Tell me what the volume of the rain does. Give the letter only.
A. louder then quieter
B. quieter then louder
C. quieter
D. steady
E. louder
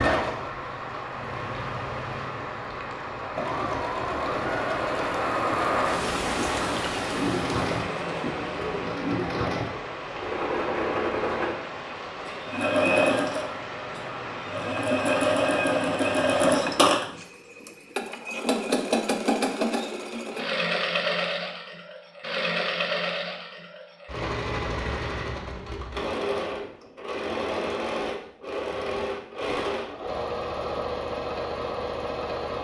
A.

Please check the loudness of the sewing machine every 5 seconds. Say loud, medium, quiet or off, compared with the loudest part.
medium, medium, loud, loud, medium, medium, medium.